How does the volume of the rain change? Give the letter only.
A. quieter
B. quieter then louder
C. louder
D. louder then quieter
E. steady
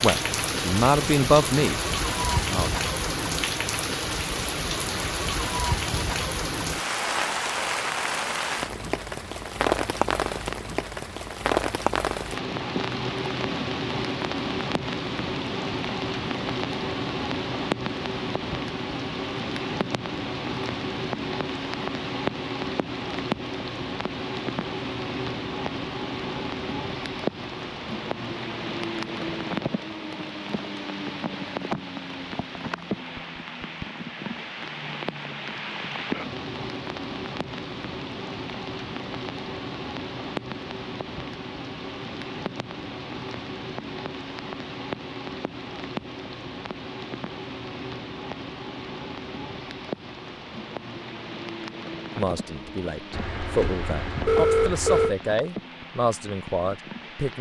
A.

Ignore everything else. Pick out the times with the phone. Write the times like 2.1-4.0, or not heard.
53.1-55.1.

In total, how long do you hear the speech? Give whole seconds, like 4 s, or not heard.
8 s.